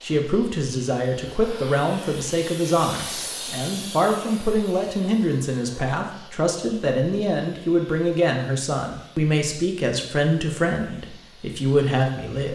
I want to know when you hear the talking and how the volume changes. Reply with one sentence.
You can hear the talking from 0.0 to 12.4 s, at a steady volume.